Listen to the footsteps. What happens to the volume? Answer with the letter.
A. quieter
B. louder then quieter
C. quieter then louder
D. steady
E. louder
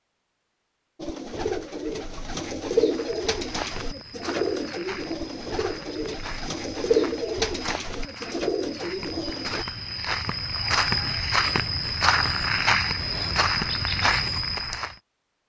E.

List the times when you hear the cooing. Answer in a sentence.
You can hear the cooing from 1.0 to 9.7 s.